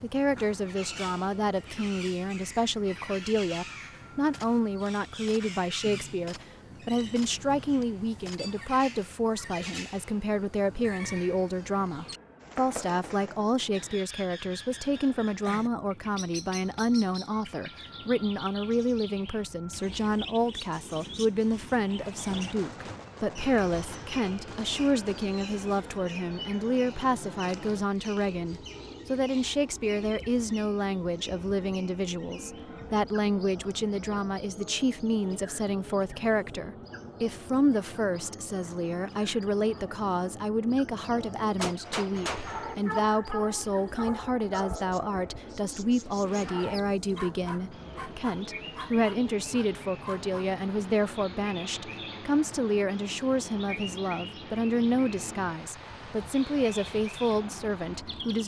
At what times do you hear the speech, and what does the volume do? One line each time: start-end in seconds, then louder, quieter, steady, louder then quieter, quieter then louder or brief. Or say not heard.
0.0-58.4 steady.